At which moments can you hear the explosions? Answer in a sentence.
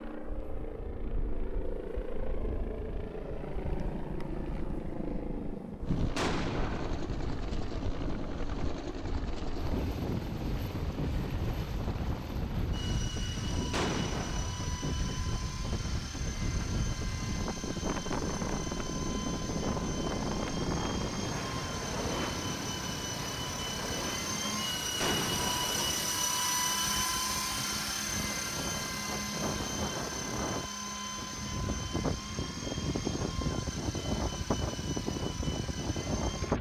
You can hear the explosions from 6.2 to 7.0 s, from 13.7 to 14.6 s and from 25.0 to 25.8 s.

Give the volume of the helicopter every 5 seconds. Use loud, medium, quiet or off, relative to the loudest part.
medium, medium, medium, medium, medium, loud, medium, medium.